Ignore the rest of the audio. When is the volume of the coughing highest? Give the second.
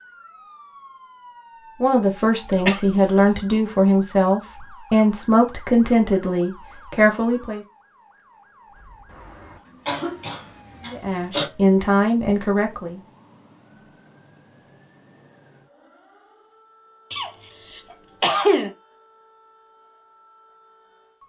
18 s.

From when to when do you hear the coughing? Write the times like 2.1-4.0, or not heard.
2.5-3.2, 9.1-11.5, 17.1-18.8.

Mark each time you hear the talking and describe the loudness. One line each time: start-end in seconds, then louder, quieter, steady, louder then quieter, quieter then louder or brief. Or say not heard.
1.8-7.7 steady
10.8-13.0 brief.